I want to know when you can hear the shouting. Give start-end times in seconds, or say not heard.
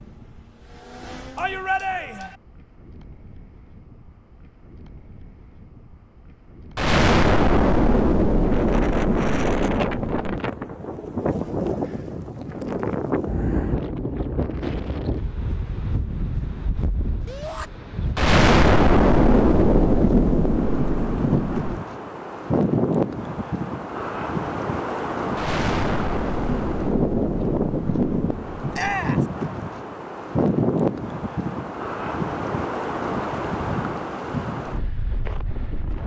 1.4-2.4, 17.2-17.7, 28.7-29.2.